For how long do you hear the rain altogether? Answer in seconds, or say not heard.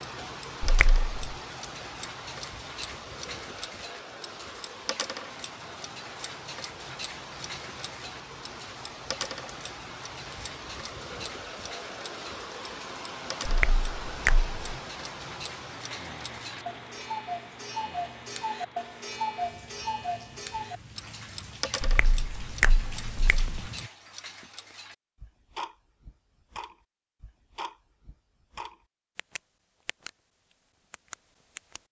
24 s.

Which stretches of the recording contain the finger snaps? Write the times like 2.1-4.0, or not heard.
0.6-1.4, 13.4-14.5, 21.8-23.7.